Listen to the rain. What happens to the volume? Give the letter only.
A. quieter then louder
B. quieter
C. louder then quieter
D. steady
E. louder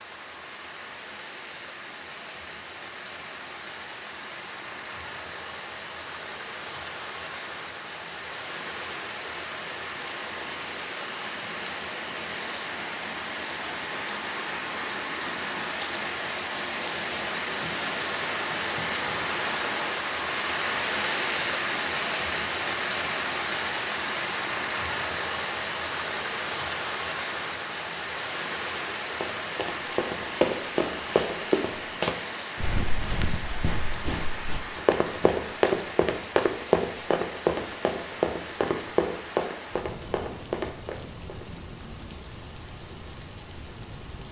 C.